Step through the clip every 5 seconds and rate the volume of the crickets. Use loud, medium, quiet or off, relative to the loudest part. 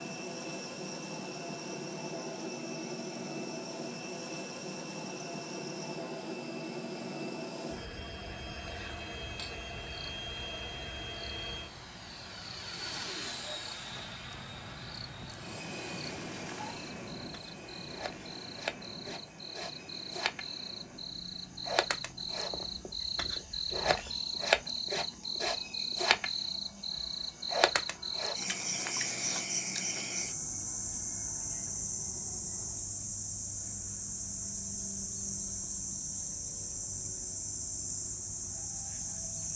quiet, quiet, quiet, medium, loud, loud, loud, loud.